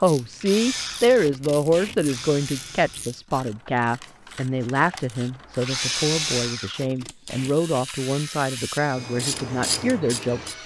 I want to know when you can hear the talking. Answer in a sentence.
The talking can be heard from 0.0 to 10.6 s.